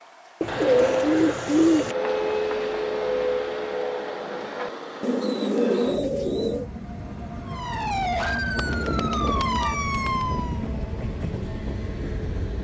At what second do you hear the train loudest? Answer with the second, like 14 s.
1 s.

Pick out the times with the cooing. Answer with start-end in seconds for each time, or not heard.
0.4-1.9, 5.0-6.7, 8.6-10.6.